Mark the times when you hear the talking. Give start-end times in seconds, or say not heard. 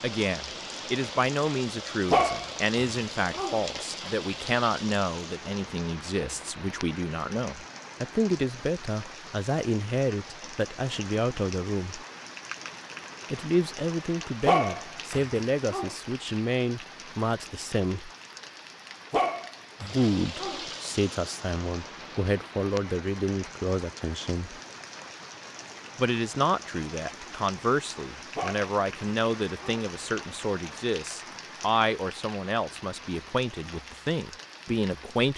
0.0-12.1, 13.3-18.1, 19.8-24.6, 25.9-35.3.